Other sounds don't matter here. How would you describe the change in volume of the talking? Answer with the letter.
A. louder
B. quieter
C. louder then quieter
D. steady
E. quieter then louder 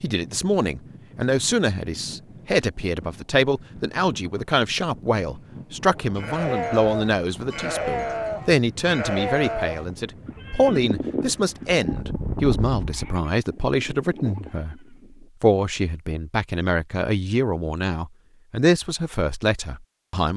D.